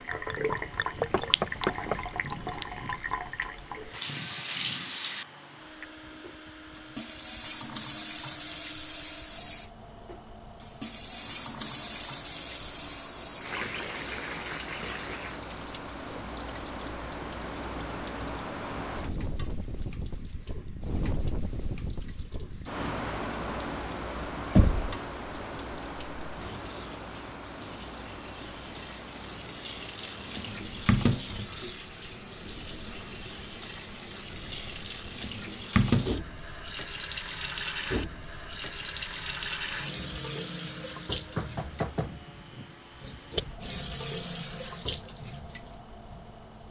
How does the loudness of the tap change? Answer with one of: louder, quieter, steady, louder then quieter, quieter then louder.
quieter then louder.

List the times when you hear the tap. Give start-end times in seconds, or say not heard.
0.0-46.6.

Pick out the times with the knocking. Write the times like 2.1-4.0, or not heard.
1.1-2.0, 24.6-25.0, 41.0-42.2.